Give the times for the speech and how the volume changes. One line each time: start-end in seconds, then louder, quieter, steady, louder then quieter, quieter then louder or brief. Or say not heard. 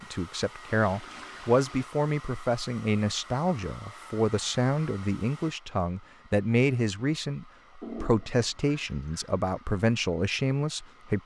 0.0-11.2 steady.